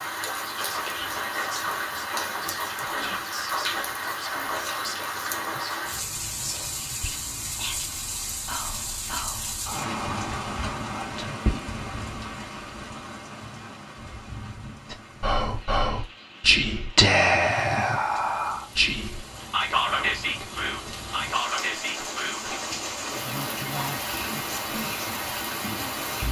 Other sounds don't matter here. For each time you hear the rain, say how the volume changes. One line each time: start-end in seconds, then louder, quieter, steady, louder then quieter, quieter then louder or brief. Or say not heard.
0.0-26.2 quieter then louder.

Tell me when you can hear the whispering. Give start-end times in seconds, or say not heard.
0.3-11.6, 14.9-26.1.